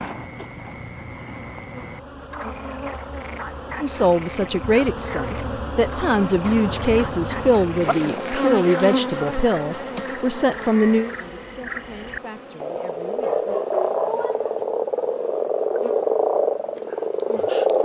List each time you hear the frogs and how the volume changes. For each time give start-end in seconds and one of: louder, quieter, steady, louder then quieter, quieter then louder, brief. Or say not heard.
0.0-17.7 louder.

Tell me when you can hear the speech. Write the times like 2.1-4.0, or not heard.
3.8-13.4.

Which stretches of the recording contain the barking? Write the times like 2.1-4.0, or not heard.
13.2-14.7.